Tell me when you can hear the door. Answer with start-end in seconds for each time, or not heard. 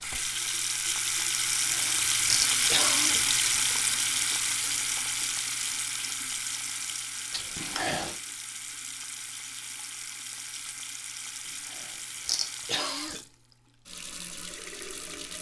not heard.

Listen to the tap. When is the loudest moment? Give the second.
3 s.